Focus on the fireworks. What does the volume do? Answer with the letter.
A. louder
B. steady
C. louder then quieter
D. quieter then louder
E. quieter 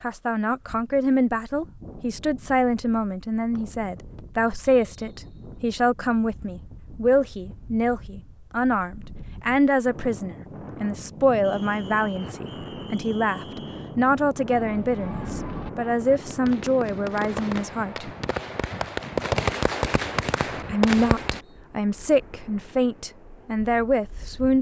A.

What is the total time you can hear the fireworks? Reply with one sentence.
The fireworks can be heard for 7 seconds in total.